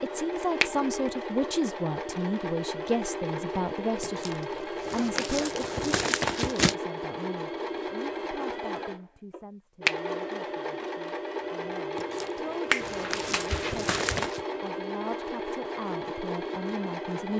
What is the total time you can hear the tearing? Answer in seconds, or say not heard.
5 s.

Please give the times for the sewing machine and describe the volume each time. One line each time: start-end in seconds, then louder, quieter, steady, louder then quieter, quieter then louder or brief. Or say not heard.
0.0-17.3 steady.